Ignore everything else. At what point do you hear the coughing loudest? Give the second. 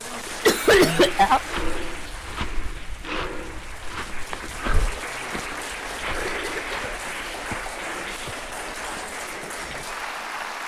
1 s.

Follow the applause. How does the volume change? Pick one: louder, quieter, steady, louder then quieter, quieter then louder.
quieter then louder.